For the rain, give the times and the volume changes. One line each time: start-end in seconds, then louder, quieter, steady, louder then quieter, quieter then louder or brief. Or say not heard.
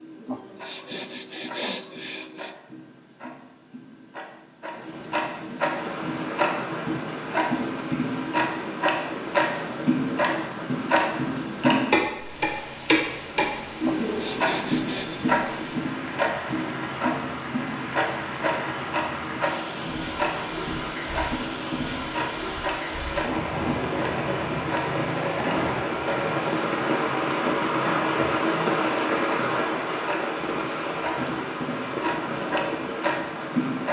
5.8-33.8 louder.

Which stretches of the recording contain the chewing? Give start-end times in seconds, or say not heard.
not heard.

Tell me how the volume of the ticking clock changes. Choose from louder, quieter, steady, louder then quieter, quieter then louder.
louder then quieter.